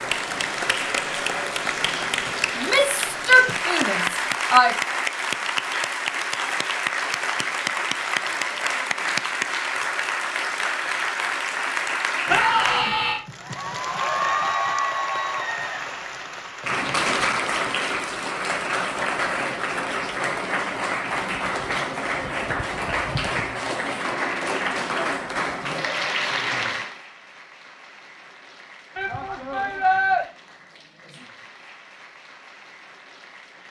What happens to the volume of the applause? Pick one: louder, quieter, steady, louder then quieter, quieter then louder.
quieter.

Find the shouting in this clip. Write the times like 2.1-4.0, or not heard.
2.5-4.8, 12.2-13.2, 28.9-30.2.